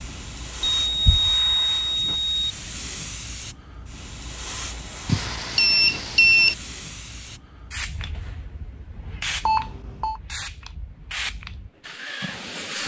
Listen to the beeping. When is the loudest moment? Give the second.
6 s.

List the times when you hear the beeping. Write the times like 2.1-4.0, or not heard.
0.8-2.5, 5.0-6.5, 9.4-10.2.